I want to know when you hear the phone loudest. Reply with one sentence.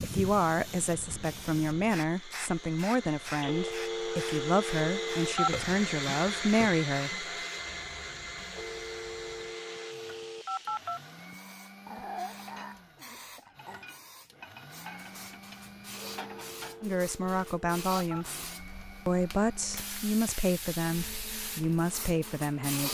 The volume of the phone peaks at 5 seconds.